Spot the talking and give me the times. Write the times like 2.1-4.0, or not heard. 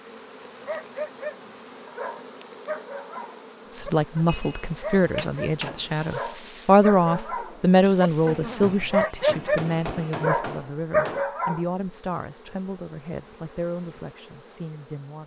3.7-15.2.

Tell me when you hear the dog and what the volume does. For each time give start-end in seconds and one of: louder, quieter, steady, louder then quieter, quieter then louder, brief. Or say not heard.
0.6-11.7 louder.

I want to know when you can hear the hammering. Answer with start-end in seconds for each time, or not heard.
4.2-6.0, 8.6-11.2.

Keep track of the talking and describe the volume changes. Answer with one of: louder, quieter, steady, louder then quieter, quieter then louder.
louder then quieter.